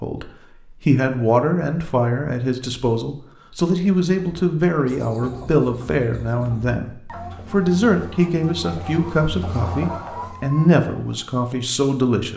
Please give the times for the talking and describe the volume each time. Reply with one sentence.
The talking can be heard from 0.0 to 12.3 s, at a steady volume.